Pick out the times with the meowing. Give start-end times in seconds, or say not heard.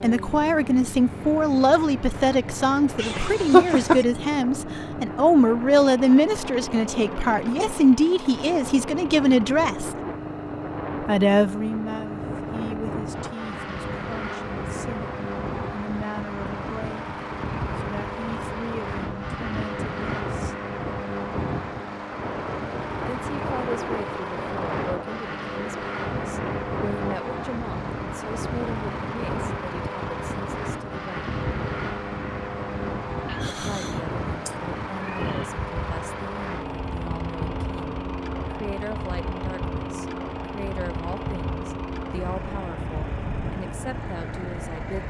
3.0-4.0, 33.2-35.5.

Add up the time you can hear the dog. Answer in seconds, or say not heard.
not heard.